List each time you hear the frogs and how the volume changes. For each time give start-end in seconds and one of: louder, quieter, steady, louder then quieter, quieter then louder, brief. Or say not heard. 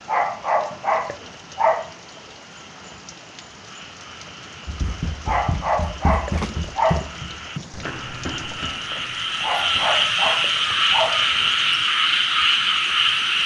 0.0-13.4 louder.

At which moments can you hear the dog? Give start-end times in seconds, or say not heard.
0.1-1.9, 5.2-7.1, 9.4-11.2.